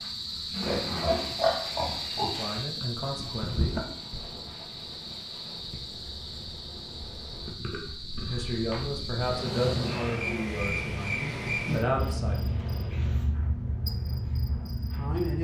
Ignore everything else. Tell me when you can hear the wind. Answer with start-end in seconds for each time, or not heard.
3.3-15.2.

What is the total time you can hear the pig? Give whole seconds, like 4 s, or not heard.
2 s.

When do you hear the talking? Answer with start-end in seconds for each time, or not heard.
2.2-3.8, 8.2-12.5, 14.9-15.3.